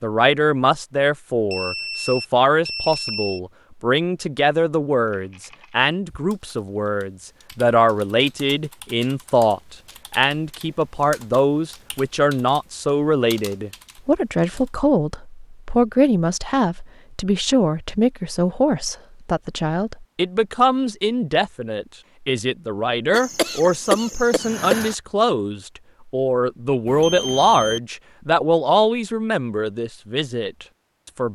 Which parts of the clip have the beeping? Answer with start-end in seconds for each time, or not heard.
1.5-3.4, 26.9-27.8.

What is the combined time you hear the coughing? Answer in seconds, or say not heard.
2 s.